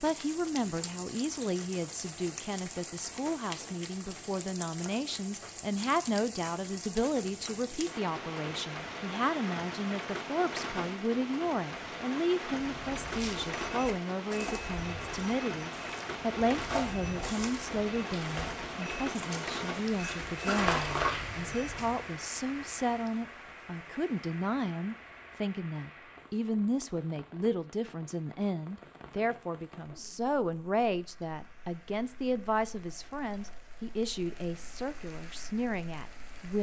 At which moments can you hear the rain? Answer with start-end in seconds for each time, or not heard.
0.0-36.5.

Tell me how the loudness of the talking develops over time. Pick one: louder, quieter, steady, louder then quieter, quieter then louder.
steady.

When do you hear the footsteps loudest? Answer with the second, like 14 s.
21 s.